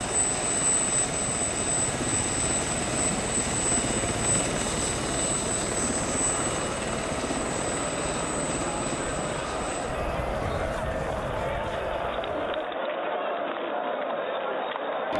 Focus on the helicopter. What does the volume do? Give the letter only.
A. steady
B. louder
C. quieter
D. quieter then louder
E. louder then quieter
C.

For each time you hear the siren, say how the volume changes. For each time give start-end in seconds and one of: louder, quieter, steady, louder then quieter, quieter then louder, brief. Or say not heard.
not heard.